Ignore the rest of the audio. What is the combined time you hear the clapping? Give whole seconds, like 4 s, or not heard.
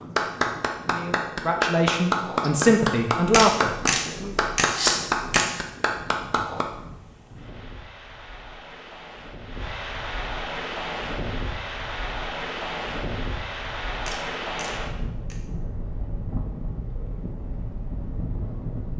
7 s.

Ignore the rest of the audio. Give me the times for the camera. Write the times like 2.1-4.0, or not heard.
3.2-5.6, 13.9-15.4.